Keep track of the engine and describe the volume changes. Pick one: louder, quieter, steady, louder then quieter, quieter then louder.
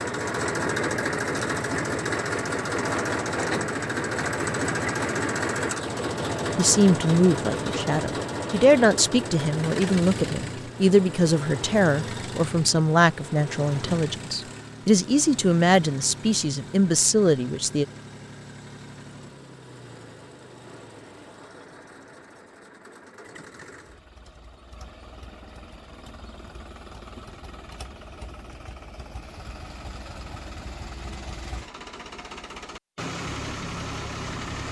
quieter then louder.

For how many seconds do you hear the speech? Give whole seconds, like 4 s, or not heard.
11 s.